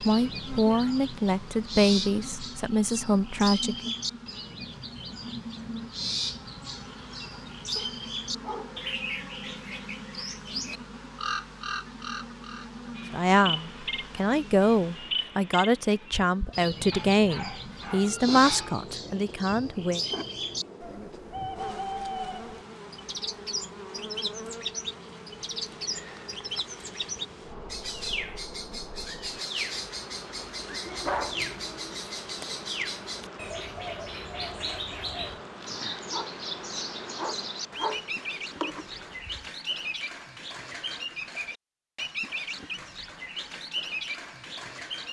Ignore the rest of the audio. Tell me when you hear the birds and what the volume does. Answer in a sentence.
The birds can be heard from 0.0 to 45.0 s, at a steady volume.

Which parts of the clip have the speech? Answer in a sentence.
You can hear the speech from 0.0 to 3.9 s and from 13.1 to 20.0 s.